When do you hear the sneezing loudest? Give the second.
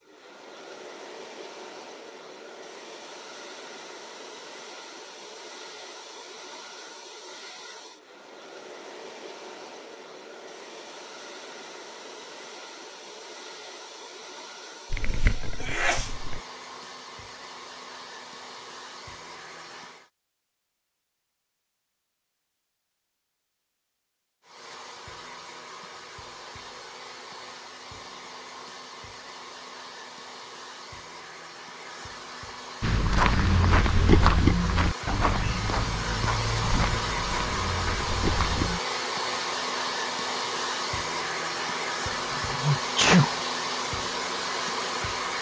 43 s.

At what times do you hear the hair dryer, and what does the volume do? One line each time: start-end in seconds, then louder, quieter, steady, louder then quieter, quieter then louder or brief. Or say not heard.
0.0-20.1 steady
24.4-45.3 louder.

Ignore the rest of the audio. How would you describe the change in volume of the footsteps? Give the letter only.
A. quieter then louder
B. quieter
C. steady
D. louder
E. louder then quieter
B.